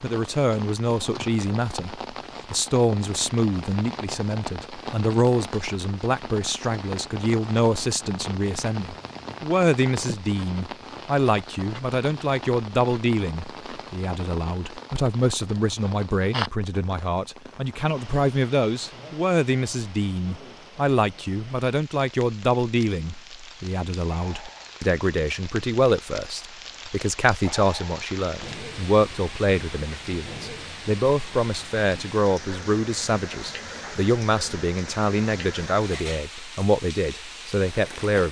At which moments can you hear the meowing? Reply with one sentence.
You can't hear the meowing here.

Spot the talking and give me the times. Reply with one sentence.
The talking can be heard from 0.0 to 38.2 s.